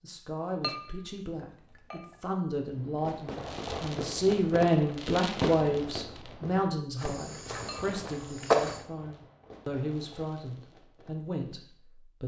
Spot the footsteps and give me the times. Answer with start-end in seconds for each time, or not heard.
7.0-8.8.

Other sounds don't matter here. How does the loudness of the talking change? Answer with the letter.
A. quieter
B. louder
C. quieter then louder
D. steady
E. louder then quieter
E.